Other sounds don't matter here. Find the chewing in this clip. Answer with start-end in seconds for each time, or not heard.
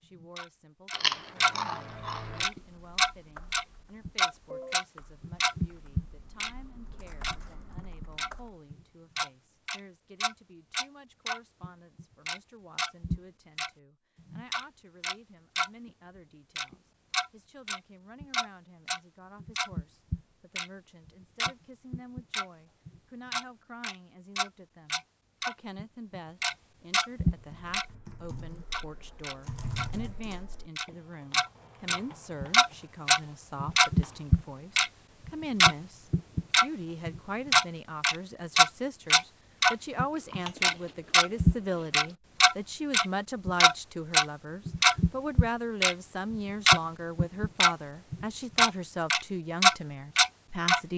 0.9-2.5, 40.1-42.1.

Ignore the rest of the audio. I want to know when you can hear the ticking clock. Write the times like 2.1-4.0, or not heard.
0.0-1.6, 2.4-15.7, 16.6-27.9, 28.5-29.9, 30.8-50.8.